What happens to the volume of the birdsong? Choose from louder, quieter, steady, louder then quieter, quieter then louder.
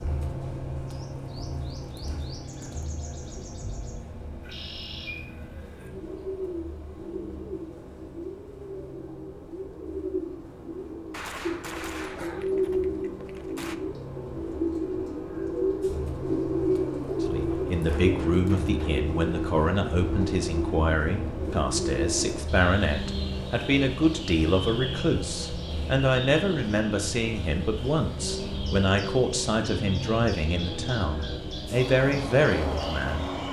louder then quieter.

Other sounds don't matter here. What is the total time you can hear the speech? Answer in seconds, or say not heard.
16 s.